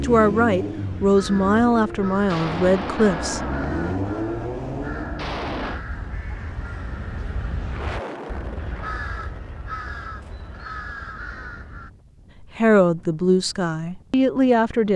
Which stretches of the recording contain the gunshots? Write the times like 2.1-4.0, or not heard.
2.2-5.8.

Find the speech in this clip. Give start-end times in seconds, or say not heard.
0.0-3.5, 12.4-14.9.